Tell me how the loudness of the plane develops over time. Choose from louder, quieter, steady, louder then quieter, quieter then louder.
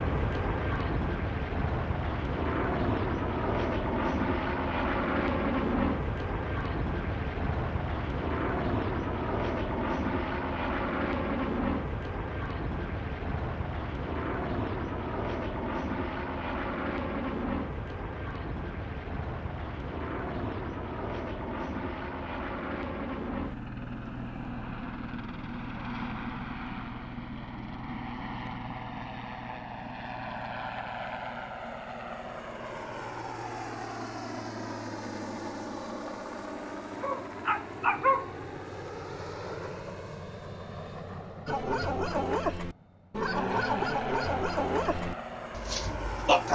quieter.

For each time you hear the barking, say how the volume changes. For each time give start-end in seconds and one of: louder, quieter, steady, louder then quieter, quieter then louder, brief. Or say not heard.
37.0-38.3 brief
41.5-46.4 quieter.